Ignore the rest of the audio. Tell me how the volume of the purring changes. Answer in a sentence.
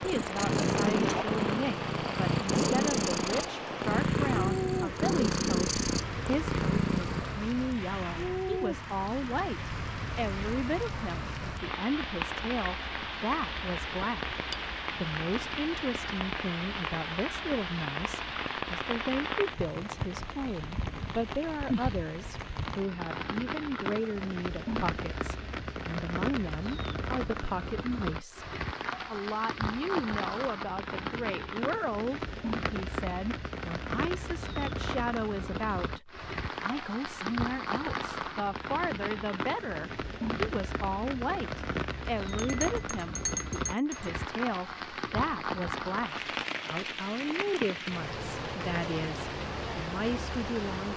The loudness of the purring stays about the same.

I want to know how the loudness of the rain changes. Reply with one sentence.
The loudness of the rain stays about the same.